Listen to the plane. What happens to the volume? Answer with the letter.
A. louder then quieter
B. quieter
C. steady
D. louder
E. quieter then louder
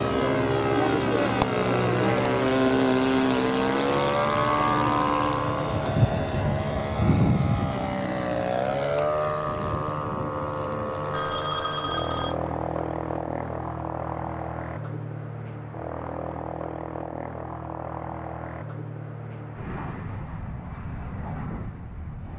B.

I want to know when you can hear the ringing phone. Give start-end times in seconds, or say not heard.
11.1-12.4.